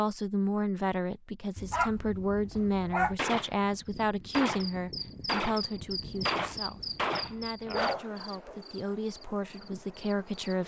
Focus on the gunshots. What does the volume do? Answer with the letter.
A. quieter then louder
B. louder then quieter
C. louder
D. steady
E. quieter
C.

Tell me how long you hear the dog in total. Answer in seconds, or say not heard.
3 s.